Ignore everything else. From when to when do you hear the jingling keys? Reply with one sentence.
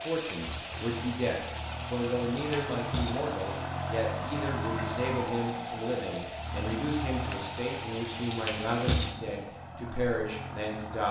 The jingling keys can be heard from 2.4 to 3.4 s and from 8.3 to 9.3 s.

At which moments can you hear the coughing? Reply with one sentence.
The coughing can't be heard in this clip.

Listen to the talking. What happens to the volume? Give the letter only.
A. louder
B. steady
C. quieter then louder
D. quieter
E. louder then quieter
B.